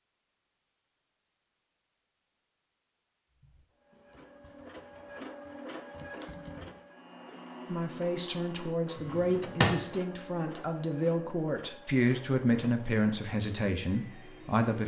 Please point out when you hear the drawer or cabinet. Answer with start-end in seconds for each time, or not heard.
8.9-9.8.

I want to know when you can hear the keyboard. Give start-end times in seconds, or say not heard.
3.3-6.8.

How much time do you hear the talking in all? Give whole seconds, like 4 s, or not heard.
7 s.